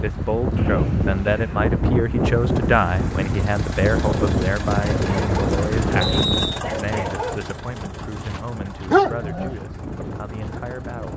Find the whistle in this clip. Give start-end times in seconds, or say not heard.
0.6-1.4, 6.0-6.6.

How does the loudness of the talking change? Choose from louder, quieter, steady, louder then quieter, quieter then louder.
quieter.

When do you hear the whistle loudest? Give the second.
6 s.